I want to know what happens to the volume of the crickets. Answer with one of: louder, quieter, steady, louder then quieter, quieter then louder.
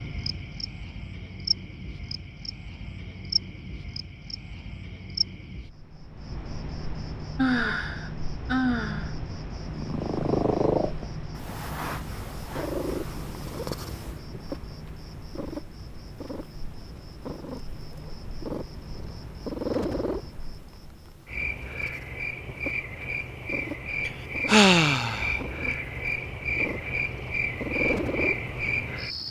quieter then louder.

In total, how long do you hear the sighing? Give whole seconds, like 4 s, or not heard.
3 s.